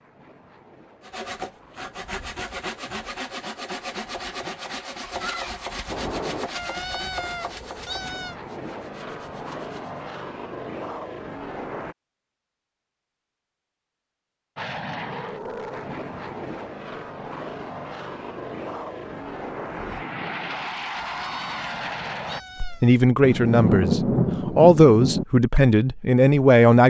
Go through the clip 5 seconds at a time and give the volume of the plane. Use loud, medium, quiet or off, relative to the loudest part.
quiet, medium, loud, loud, loud, off.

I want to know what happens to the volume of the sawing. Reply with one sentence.
The volume of the sawing goes down.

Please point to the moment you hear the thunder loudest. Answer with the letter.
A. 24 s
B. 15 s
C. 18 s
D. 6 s
A.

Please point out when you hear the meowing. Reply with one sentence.
The meowing can be heard from 6.5 to 8.3 s and from 20.9 to 22.9 s.